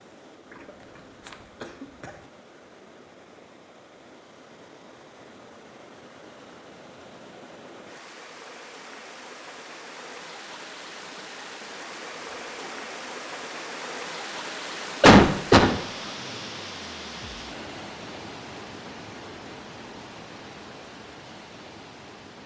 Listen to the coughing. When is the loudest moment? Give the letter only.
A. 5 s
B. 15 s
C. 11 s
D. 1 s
B.